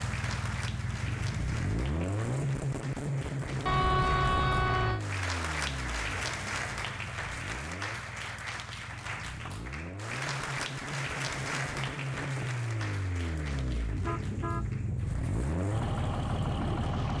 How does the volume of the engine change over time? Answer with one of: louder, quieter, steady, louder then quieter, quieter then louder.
quieter then louder.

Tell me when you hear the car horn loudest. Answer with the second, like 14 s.
4 s.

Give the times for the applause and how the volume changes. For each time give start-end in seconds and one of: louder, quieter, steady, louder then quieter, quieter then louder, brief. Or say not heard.
0.0-17.1 louder then quieter.